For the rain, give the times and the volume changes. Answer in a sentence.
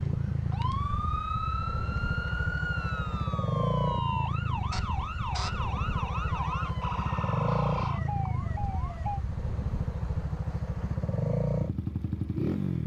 You can't hear the rain here.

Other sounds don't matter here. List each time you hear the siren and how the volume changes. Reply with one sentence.
You can hear the siren from 0.0 to 9.2 s, at a steady volume.